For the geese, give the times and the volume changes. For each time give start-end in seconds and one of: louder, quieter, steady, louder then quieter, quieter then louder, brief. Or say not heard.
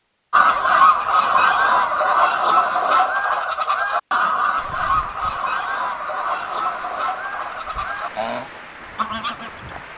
0.3-9.9 quieter.